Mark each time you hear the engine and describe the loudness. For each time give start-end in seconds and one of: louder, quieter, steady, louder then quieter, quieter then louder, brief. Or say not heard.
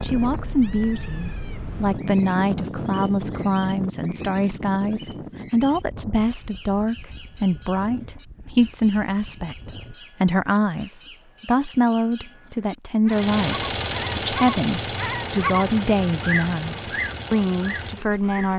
13.1-18.5 quieter.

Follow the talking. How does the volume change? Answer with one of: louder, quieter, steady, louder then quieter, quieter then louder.
steady.